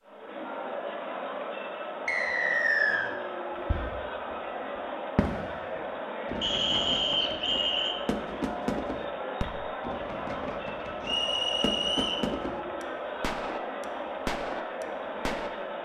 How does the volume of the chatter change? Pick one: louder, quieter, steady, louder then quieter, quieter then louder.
steady.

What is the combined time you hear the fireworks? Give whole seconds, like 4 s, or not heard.
11 s.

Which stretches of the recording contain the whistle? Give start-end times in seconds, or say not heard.
2.0-3.1, 6.4-8.0, 11.0-12.2.